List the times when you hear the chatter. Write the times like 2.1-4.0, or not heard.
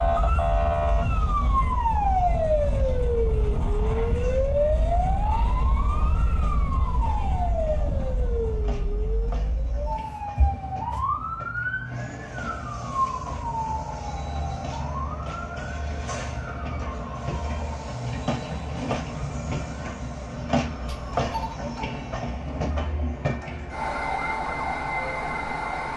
not heard.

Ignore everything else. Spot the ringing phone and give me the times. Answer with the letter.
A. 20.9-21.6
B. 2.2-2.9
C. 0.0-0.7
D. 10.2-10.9
A.